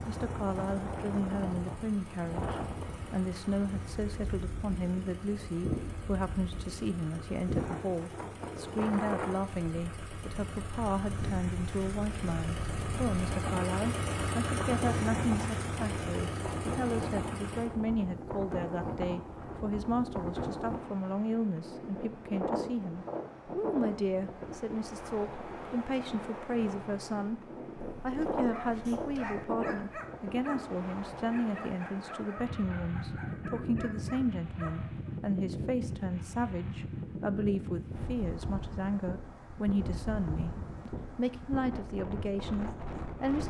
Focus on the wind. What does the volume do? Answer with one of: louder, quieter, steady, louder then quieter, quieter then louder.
steady.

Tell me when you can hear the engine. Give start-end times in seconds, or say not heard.
0.0-17.7.